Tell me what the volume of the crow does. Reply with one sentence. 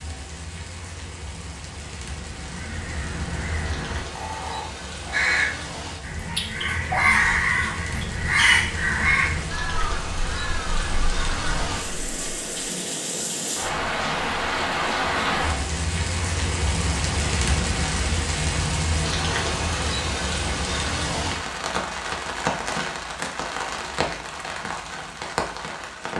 The volume of the crow goes up, then down.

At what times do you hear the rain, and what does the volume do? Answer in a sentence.
The rain can be heard from 0.0 to 26.1 s, getting louder.